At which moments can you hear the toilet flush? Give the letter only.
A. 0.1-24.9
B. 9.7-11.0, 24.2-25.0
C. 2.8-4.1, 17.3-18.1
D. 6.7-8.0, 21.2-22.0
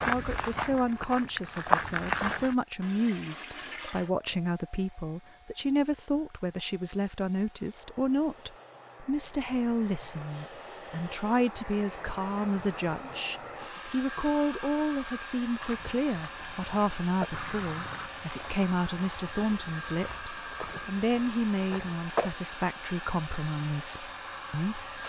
C.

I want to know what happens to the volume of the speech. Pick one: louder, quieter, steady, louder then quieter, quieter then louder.
steady.